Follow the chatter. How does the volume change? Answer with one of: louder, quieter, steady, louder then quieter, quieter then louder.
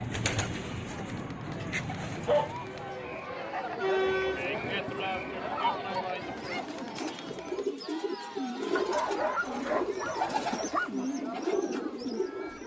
louder then quieter.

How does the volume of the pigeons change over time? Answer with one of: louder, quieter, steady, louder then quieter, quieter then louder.
quieter then louder.